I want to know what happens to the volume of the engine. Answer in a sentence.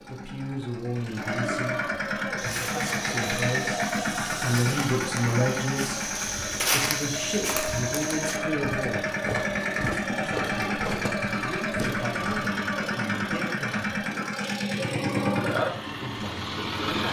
The volume of the engine stays about the same.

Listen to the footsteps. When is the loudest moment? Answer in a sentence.
The loudest moment of the footsteps is at 7 seconds.